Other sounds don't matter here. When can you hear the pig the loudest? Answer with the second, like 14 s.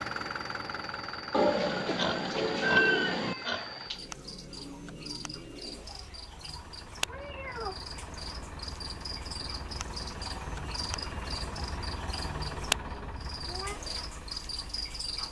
3 s.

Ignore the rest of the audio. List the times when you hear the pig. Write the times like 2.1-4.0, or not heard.
1.9-4.0.